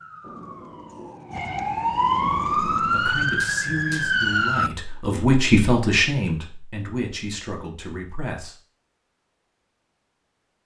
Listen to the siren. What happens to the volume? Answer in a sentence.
The volume of the siren goes up.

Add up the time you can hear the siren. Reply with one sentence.
The siren can be heard for 5 seconds in total.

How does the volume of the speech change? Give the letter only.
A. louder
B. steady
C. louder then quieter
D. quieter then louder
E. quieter
C.